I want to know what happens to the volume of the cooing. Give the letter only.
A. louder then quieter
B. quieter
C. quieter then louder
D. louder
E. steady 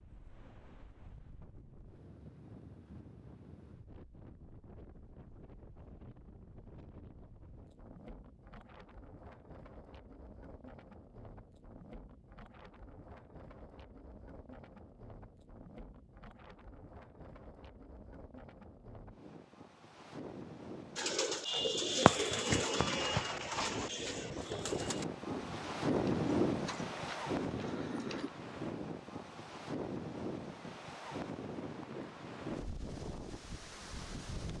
B.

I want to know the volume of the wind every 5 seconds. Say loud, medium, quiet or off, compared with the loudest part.
quiet, quiet, quiet, quiet, medium, loud, medium.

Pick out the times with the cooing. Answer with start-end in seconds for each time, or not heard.
20.9-28.3.